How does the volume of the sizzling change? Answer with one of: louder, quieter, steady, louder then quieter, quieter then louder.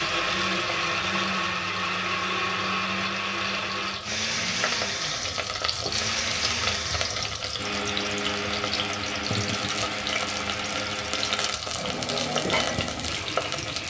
louder.